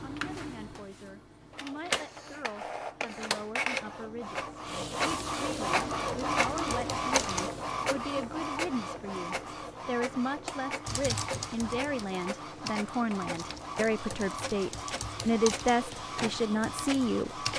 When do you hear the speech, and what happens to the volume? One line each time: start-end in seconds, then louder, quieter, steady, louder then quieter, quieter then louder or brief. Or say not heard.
0.0-17.4 louder.